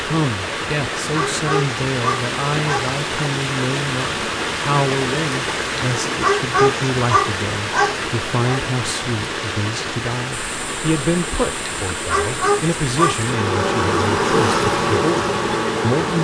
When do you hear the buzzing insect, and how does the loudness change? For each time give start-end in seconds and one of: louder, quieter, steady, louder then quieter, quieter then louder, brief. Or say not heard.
10.3-16.1 louder.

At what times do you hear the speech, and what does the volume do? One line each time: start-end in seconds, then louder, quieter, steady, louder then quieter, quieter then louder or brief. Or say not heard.
0.0-16.1 steady.